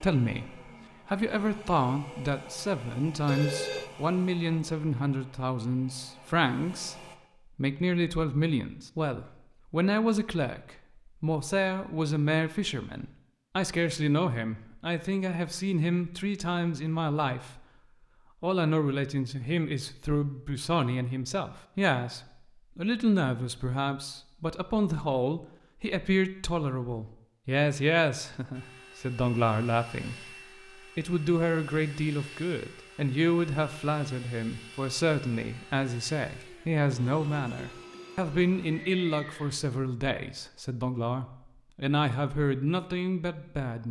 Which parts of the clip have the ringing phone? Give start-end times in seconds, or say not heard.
3.2-3.9.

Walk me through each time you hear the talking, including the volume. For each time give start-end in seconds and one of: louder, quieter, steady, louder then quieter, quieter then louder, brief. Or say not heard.
0.0-17.6 steady
18.4-43.8 steady.